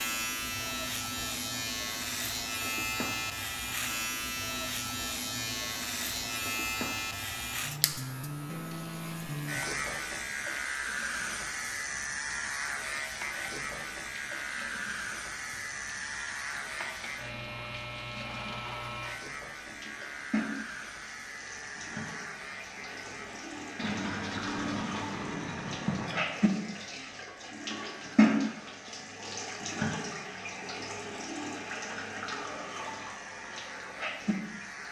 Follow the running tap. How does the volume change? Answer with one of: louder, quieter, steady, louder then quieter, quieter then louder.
louder.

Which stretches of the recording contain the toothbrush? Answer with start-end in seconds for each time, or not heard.
23.8-26.2.